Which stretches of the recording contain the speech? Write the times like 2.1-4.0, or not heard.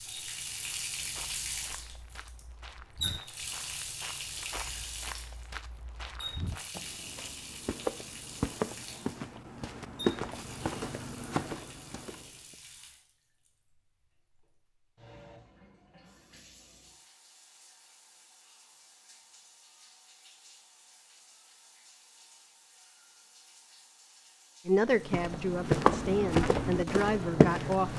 24.6-27.9.